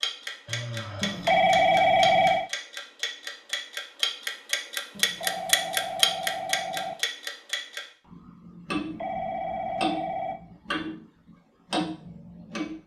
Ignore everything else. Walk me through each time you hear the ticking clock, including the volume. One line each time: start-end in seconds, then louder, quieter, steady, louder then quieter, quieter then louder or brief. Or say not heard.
0.0-11.0 louder then quieter
11.7-12.8 brief.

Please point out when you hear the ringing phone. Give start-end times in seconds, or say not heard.
1.0-2.5, 5.0-7.0, 8.7-10.4.